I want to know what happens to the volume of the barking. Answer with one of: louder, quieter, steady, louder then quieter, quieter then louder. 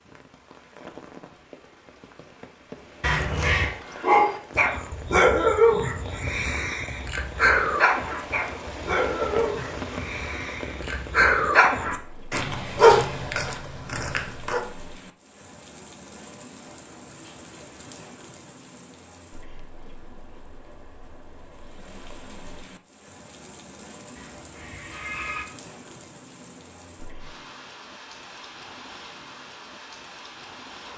quieter then louder.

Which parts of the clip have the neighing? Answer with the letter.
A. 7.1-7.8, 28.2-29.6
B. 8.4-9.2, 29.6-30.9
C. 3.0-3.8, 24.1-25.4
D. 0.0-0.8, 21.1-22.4
C.